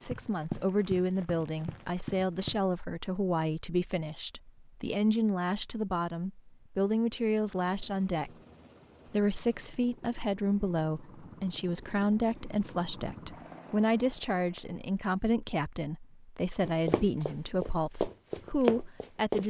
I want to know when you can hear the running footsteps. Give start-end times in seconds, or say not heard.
0.0-2.6, 16.6-19.4.